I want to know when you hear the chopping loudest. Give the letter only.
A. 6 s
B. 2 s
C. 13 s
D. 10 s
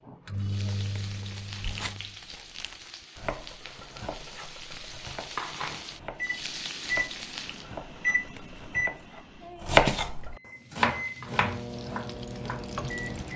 D.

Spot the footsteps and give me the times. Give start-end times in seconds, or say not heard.
not heard.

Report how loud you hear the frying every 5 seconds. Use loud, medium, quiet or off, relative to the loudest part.
medium, loud, medium.